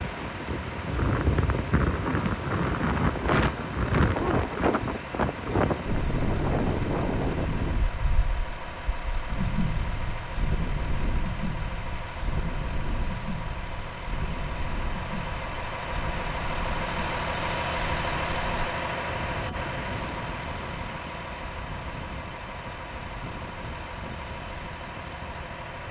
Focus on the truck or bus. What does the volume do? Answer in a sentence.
The loudness of the truck or bus goes up, then down.